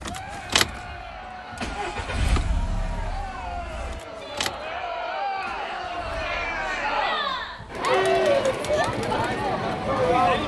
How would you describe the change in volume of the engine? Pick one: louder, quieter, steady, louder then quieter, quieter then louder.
quieter then louder.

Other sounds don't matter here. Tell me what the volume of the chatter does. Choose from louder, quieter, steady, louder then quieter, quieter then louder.
louder.